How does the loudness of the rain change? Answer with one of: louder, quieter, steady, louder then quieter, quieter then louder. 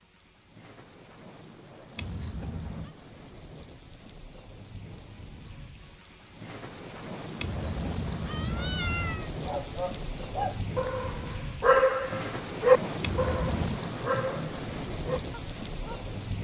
louder.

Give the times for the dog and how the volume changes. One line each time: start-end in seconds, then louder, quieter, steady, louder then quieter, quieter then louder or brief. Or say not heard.
9.4-16.1 louder then quieter.